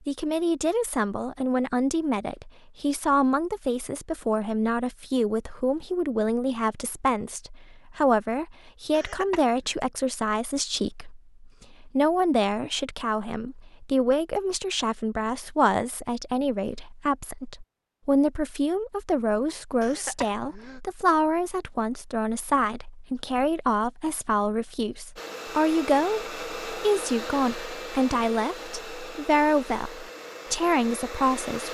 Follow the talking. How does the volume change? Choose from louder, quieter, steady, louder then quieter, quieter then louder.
steady.